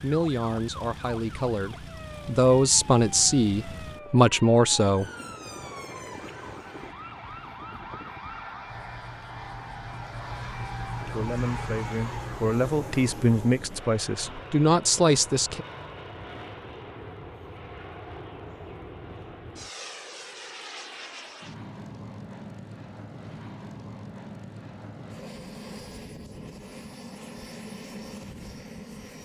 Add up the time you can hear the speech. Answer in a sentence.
The speech can be heard for 10 seconds in total.